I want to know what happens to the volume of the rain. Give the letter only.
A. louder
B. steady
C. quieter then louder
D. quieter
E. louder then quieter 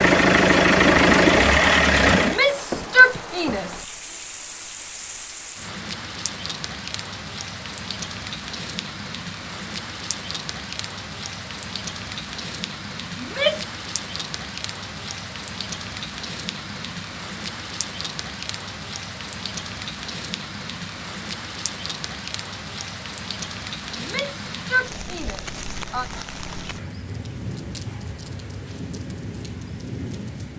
B.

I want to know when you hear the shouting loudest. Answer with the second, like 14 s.
3 s.